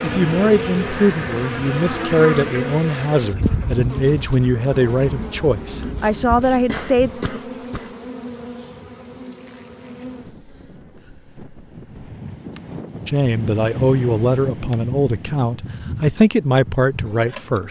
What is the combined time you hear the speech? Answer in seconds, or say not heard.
12 s.